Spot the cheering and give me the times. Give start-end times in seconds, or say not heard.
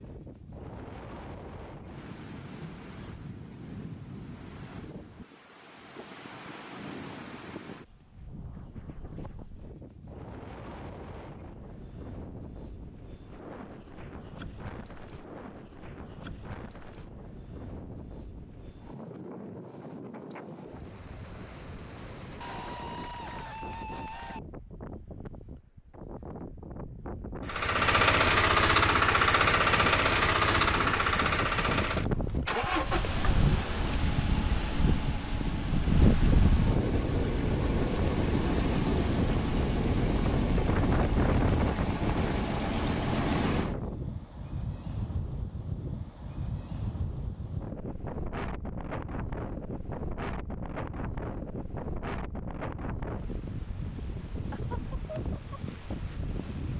22.4-24.4.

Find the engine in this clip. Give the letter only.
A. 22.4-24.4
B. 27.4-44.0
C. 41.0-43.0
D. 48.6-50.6
B.